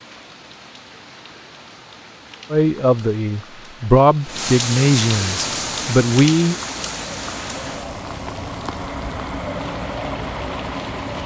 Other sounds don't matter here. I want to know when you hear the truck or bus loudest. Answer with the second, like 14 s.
10 s.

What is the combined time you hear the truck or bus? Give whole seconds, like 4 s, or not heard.
6 s.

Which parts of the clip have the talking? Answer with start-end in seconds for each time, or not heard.
2.5-6.5.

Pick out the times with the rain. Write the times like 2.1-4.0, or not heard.
0.0-11.2.